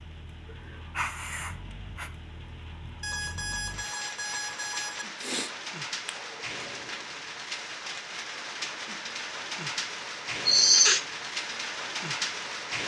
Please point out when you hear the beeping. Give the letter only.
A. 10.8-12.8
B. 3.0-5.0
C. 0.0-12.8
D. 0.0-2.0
B.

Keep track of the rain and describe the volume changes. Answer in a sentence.
The loudness of the rain goes up.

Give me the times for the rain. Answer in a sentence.
The rain can be heard from 0.0 to 12.8 s.